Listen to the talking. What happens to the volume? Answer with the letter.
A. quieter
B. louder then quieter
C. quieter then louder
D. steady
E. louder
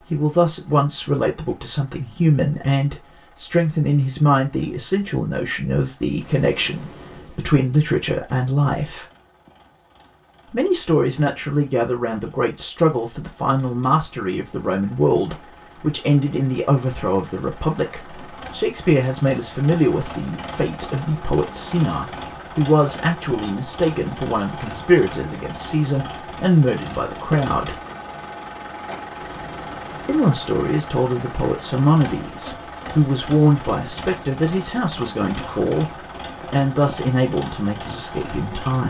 D.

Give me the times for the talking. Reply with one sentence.
You can hear the talking from 0.1 to 9.1 s, from 10.5 to 27.8 s and from 30.1 to 38.8 s.